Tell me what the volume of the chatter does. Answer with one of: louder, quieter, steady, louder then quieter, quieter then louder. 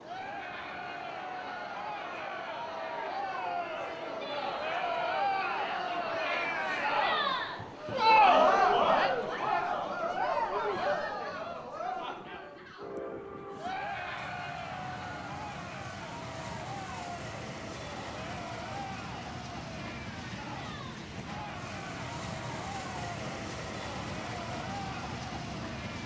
louder then quieter.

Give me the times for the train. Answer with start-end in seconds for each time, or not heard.
0.0-26.0.